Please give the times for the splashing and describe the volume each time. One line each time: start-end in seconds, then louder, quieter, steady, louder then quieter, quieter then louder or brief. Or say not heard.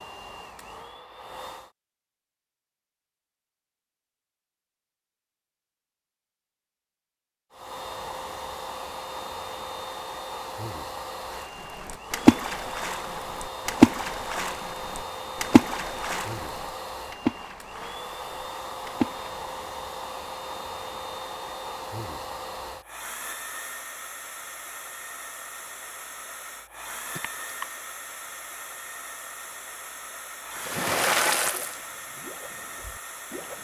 11.8-19.4 quieter
30.6-33.5 brief.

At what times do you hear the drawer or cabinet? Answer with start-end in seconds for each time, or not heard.
not heard.